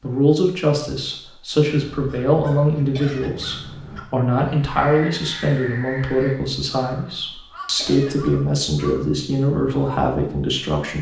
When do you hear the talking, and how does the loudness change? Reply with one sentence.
The talking can be heard from 0.0 to 10.9 s, at a steady volume.